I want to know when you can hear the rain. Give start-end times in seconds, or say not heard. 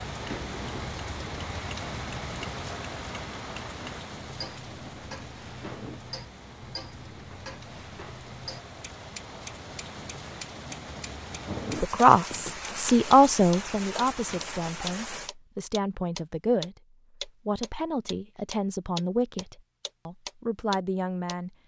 0.0-15.3.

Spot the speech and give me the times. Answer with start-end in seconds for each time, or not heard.
11.8-21.5.